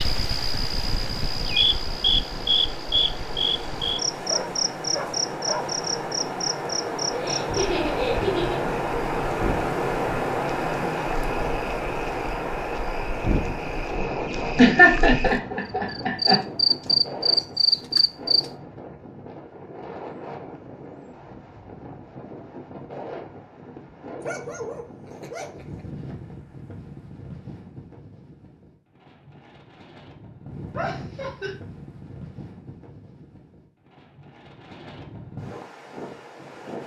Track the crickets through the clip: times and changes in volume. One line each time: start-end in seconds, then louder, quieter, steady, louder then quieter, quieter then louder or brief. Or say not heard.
0.0-18.4 quieter then louder.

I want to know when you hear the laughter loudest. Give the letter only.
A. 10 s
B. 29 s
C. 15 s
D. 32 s
C.